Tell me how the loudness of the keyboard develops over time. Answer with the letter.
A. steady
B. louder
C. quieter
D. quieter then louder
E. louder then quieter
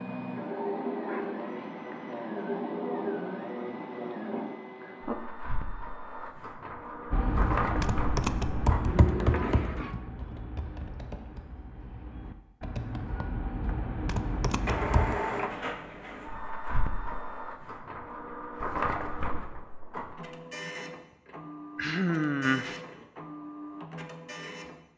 D.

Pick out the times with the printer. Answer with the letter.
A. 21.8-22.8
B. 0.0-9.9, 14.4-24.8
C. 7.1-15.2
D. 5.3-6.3
B.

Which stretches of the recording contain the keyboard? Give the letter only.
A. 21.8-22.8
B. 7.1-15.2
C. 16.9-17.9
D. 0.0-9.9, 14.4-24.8
B.